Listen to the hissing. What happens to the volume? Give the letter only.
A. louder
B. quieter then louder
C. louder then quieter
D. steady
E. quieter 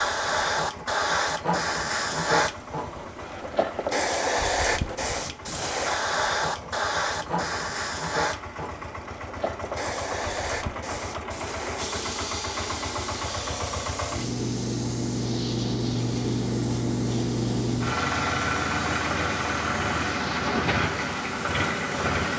E.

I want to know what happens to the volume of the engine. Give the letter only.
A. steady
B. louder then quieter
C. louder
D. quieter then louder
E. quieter
C.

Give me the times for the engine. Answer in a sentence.
You can hear the engine from 0.0 to 22.3 s.